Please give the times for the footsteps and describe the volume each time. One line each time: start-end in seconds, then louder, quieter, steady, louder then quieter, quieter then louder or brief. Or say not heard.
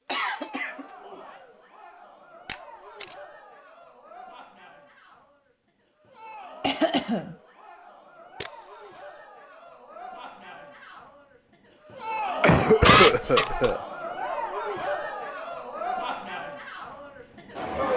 not heard.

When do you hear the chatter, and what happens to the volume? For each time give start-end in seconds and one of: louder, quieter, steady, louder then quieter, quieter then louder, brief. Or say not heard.
0.1-17.9 louder.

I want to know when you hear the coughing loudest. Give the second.
13 s.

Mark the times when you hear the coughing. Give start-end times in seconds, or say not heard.
0.1-1.4, 6.6-7.3, 12.4-13.8.